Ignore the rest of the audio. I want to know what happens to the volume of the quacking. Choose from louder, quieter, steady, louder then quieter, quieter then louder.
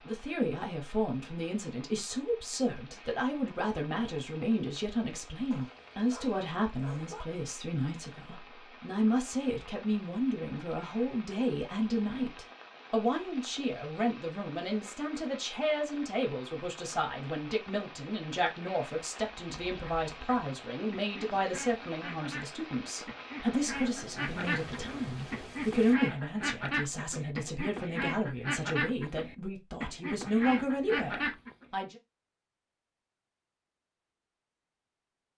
louder.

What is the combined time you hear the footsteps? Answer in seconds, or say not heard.
not heard.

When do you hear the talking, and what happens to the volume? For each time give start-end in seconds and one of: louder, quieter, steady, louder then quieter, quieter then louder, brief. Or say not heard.
0.1-31.9 steady.